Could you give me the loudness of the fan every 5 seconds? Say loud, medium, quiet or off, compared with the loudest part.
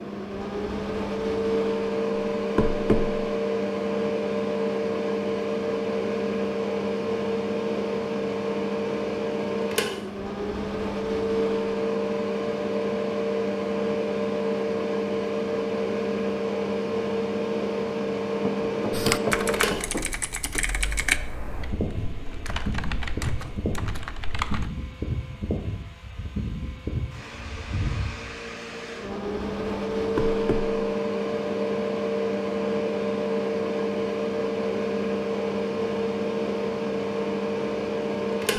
loud, loud, loud, loud, medium, medium, loud, loud.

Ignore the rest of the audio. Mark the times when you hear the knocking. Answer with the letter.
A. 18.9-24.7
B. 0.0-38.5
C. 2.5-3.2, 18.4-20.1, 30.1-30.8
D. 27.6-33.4
C.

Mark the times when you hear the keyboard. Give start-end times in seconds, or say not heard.
18.9-24.7.